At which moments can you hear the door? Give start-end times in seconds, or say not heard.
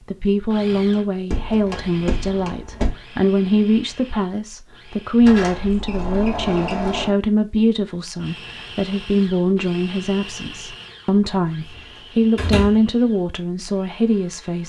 0.9-3.0, 5.2-7.2, 11.8-12.8.